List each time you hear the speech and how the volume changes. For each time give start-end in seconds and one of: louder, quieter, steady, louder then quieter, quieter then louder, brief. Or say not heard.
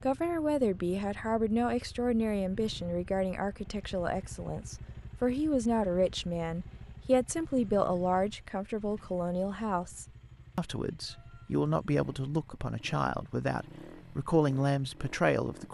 0.0-15.6 steady.